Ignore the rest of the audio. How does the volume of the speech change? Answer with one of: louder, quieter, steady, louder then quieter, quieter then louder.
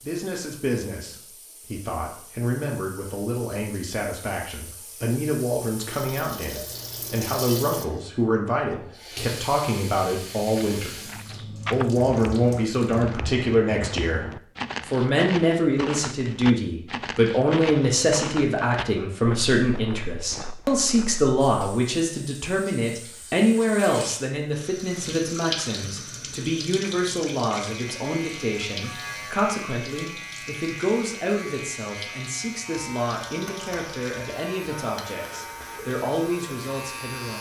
louder then quieter.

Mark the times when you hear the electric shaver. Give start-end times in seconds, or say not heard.
27.6-37.3.